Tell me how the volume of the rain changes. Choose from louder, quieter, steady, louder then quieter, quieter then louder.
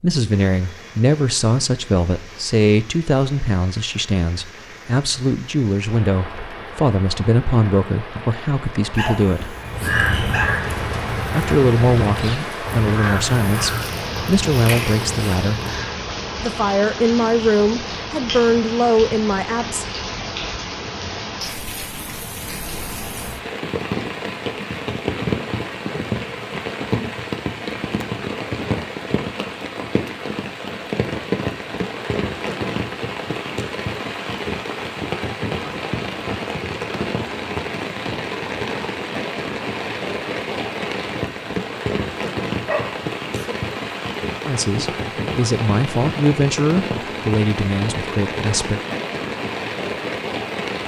louder.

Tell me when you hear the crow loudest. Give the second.
10 s.